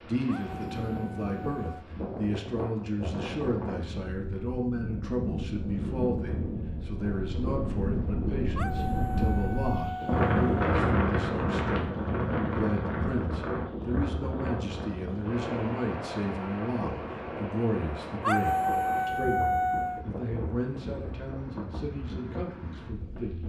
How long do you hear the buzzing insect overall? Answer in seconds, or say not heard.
not heard.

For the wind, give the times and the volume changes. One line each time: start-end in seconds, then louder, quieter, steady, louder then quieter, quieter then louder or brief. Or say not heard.
0.0-23.4 louder then quieter.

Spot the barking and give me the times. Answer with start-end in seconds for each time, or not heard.
0.2-1.9, 8.6-10.6, 18.2-20.1.